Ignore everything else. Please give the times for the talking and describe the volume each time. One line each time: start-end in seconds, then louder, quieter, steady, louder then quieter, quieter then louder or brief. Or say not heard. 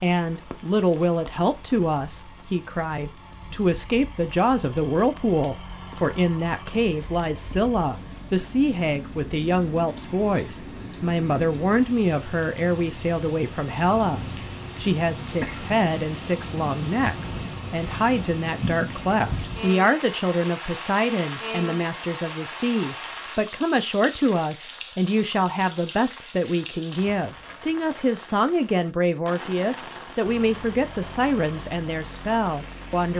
0.0-33.1 steady.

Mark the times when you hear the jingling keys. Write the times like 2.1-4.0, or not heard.
not heard.